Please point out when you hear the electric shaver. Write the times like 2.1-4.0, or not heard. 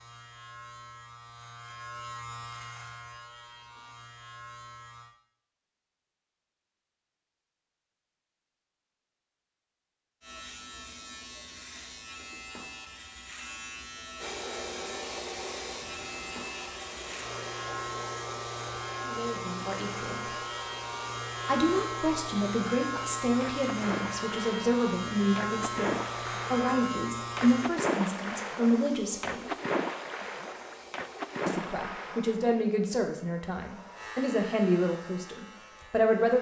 0.0-5.1, 10.2-27.7, 33.9-36.2.